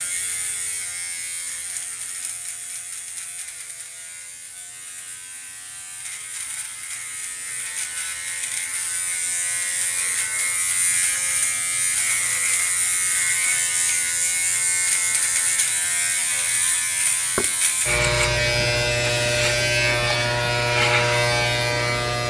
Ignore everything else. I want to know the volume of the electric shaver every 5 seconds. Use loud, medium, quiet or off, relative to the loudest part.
quiet, quiet, medium, loud, loud.